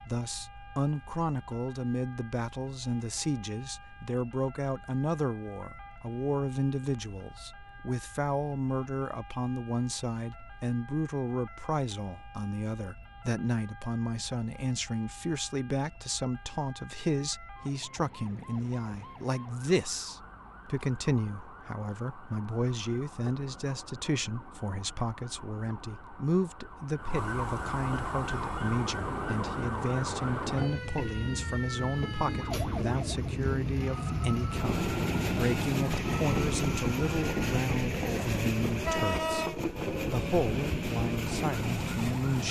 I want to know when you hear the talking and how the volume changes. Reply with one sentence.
You can hear the talking from 0.0 to 42.4 s, at a steady volume.